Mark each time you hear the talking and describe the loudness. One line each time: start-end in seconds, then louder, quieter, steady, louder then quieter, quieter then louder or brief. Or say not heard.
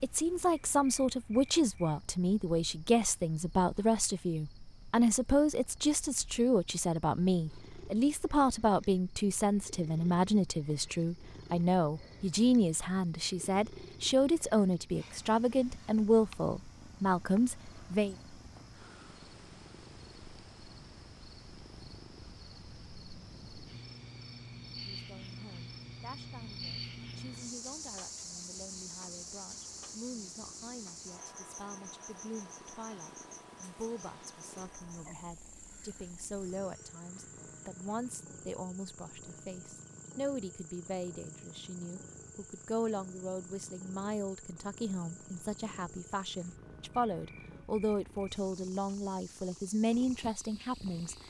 0.0-18.1 steady
24.7-51.1 louder.